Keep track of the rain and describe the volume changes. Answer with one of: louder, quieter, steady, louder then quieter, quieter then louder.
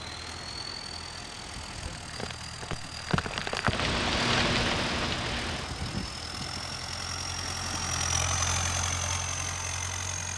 louder then quieter.